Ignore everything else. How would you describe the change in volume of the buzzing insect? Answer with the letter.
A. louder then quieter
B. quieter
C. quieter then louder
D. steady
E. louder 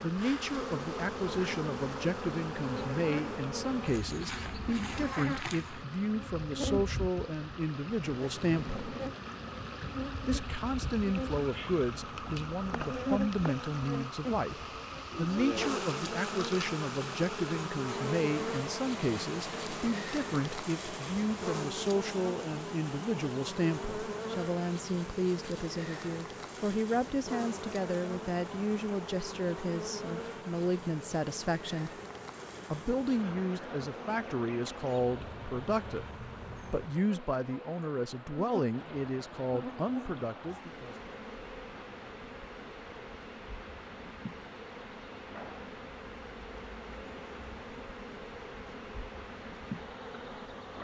B.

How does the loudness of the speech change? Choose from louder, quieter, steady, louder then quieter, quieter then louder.
steady.